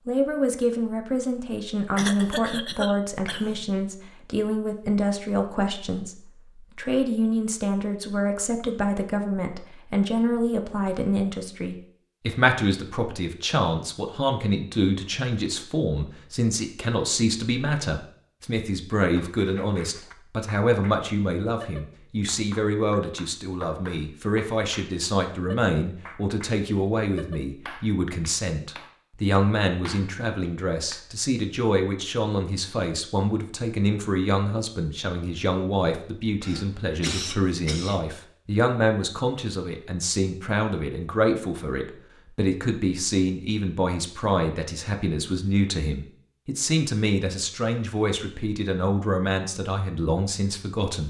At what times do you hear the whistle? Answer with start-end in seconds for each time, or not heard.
not heard.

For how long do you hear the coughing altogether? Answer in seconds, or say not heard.
3 s.